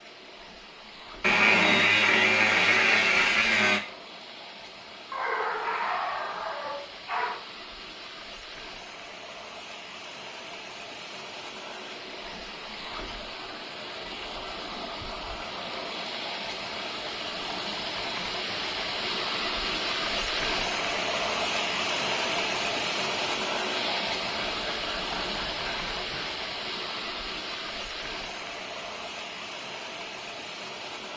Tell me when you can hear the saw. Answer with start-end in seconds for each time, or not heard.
1.2-3.8, 24.4-26.4.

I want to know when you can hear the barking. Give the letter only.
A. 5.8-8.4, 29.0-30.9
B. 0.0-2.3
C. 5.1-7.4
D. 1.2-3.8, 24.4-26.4
C.